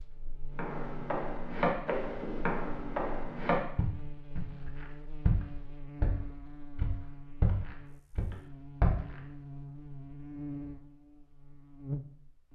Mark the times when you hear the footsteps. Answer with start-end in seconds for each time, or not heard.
0.6-9.2.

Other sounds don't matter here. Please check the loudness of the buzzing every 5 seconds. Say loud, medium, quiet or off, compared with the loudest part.
medium, medium, loud.